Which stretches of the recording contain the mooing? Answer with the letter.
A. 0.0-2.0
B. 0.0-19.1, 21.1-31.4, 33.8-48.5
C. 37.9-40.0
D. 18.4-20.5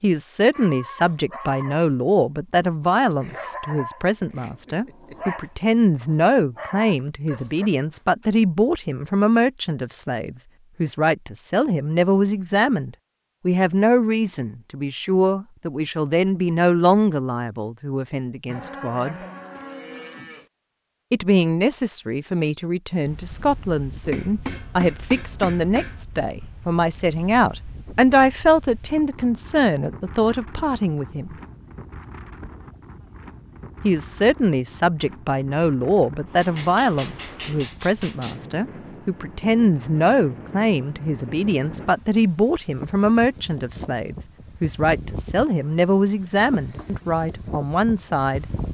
D.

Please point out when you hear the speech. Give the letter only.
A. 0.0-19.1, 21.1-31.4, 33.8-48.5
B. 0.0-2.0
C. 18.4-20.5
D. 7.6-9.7
A.